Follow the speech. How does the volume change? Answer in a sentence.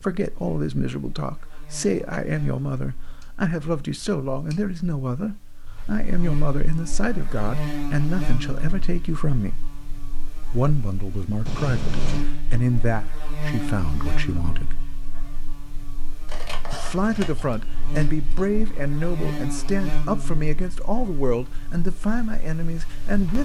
The loudness of the speech stays about the same.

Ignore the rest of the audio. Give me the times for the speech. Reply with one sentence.
The speech can be heard from 0.0 to 9.6 s, from 10.5 to 14.8 s and from 16.7 to 23.4 s.